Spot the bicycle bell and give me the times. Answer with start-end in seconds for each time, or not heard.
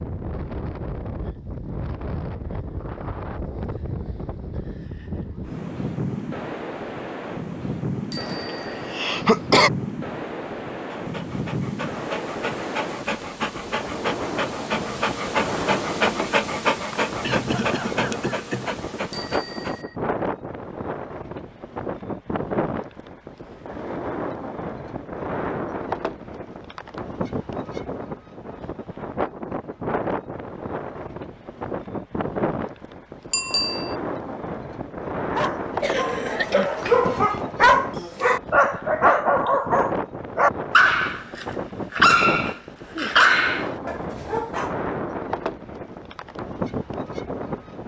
8.1-8.8, 19.1-19.9, 33.3-34.0.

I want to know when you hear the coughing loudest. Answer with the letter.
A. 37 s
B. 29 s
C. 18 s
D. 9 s
D.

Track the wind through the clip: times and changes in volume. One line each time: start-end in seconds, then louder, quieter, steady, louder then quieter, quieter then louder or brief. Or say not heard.
0.0-47.8 steady.